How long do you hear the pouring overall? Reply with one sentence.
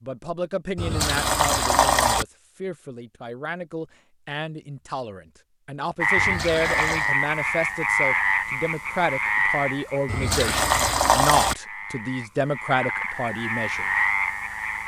You can hear the pouring for 4 seconds altogether.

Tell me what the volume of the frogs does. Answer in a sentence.
The volume of the frogs goes down, then up.